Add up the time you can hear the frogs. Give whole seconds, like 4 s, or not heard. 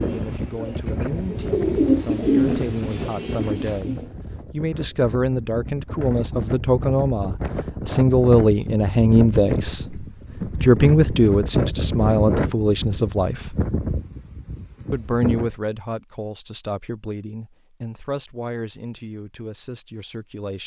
not heard.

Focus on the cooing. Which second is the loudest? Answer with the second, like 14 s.
2 s.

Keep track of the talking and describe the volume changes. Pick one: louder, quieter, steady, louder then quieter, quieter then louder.
louder then quieter.